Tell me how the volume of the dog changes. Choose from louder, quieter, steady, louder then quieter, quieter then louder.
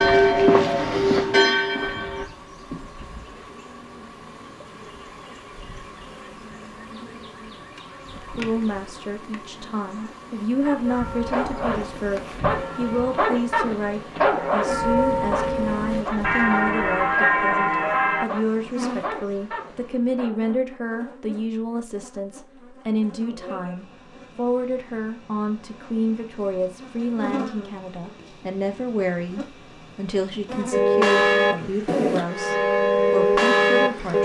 louder then quieter.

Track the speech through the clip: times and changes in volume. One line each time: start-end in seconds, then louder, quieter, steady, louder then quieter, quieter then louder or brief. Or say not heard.
8.2-34.2 steady.